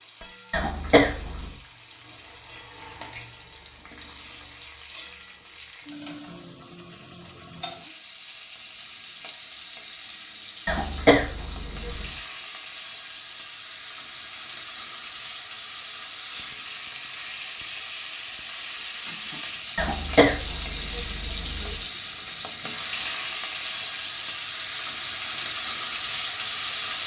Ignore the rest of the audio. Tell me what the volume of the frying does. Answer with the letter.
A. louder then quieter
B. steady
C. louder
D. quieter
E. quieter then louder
C.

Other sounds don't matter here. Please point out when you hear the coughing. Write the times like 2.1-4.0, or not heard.
0.5-1.6, 10.7-12.2, 19.8-21.8.